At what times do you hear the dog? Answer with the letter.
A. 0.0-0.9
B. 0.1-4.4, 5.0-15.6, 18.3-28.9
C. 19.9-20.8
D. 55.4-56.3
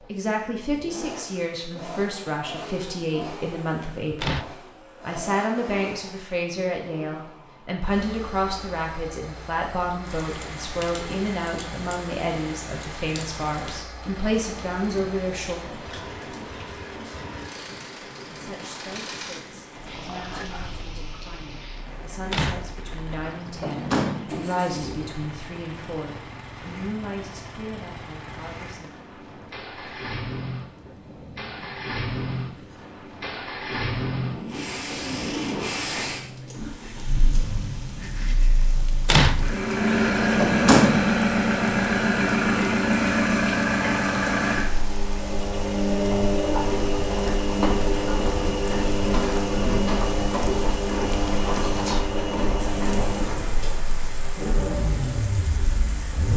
C.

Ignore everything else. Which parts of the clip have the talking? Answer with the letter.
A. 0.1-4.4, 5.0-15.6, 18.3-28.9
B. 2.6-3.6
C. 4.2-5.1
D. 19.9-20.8
A.